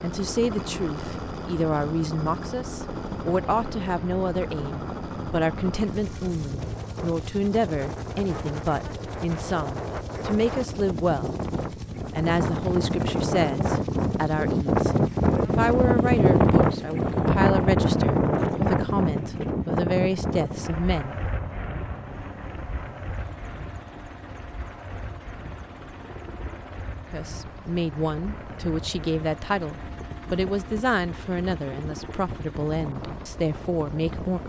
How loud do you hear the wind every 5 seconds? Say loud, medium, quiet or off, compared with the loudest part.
quiet, quiet, medium, loud, quiet, quiet, quiet.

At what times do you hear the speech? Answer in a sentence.
The speech can be heard from 0.0 to 11.3 s, from 12.1 to 21.2 s and from 27.1 to 34.4 s.